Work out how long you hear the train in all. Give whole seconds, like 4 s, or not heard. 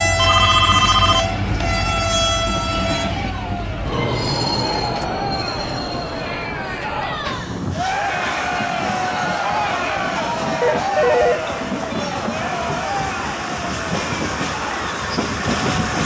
16 s.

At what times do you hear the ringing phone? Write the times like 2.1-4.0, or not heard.
0.1-1.6, 10.6-11.8.